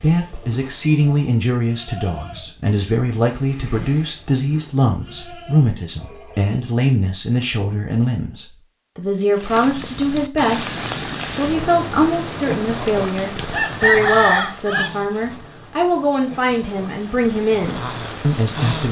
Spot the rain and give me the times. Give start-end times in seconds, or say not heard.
9.3-18.8.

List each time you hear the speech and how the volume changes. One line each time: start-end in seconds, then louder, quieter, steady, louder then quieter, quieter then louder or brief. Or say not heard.
0.0-18.8 steady.